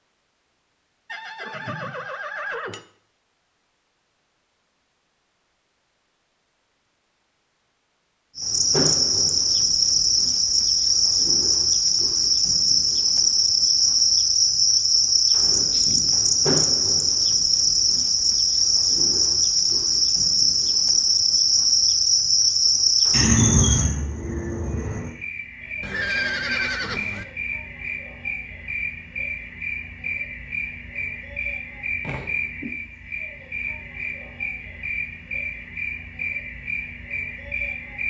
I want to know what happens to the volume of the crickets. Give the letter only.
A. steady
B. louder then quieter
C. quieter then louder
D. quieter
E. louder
D.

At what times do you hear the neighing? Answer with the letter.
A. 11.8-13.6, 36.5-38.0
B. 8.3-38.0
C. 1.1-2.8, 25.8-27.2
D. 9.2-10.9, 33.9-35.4
C.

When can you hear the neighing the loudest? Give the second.
26 s.